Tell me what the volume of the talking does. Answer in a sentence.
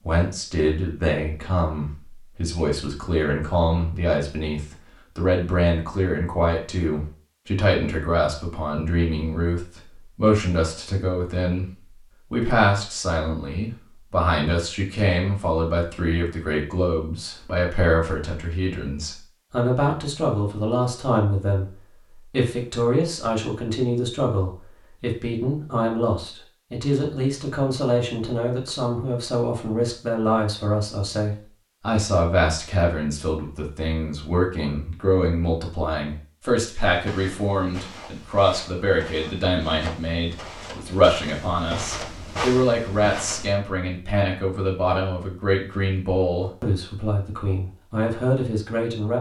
The volume of the talking stays about the same.